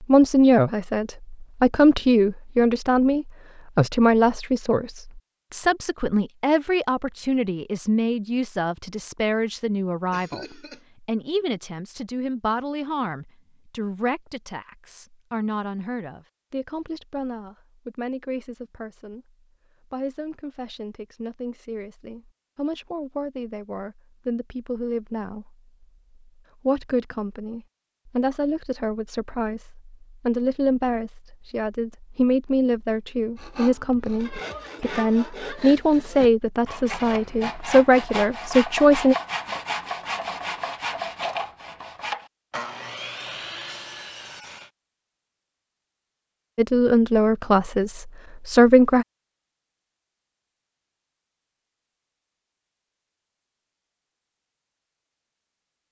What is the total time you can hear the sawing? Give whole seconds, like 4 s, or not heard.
11 s.